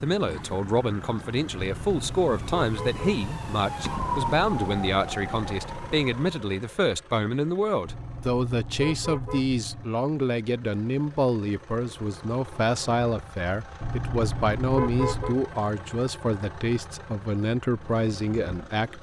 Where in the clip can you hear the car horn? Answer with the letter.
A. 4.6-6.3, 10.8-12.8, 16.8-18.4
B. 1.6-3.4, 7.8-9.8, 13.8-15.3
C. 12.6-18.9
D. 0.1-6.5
B.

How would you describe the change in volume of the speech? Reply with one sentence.
The loudness of the speech stays about the same.